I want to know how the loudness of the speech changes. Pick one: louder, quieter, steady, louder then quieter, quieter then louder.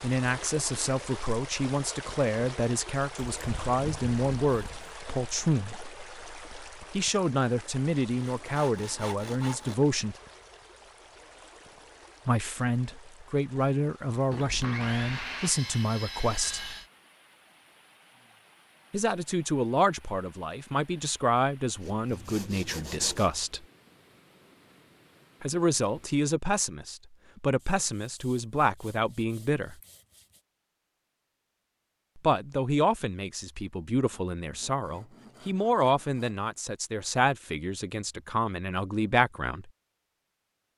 steady.